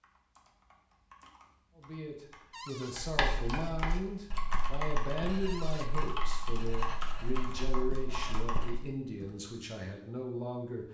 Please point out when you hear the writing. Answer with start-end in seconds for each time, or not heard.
3.0-9.0.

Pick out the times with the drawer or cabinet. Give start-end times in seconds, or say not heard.
2.5-3.0, 5.5-5.9.